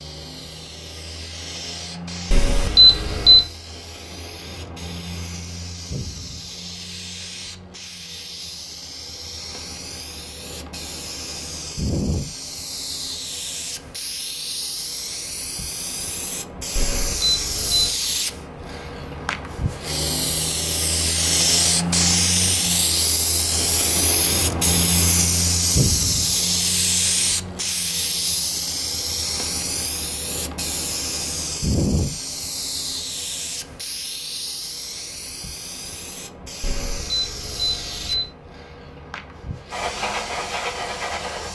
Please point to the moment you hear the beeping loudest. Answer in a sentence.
The volume of the beeping peaks at 3 seconds.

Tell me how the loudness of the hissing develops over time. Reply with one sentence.
The volume of the hissing goes up, then down.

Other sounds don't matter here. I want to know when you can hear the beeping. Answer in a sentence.
You can hear the beeping from 2.3 to 3.5 s, from 16.8 to 17.9 s and from 36.6 to 38.2 s.